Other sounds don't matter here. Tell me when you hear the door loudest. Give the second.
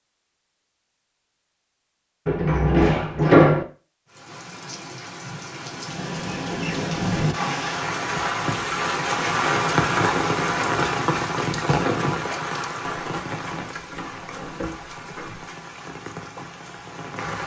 3 s.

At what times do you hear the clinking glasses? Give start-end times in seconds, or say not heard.
not heard.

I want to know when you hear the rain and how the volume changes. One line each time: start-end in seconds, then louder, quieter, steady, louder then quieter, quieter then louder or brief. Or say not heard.
4.0-17.4 louder then quieter.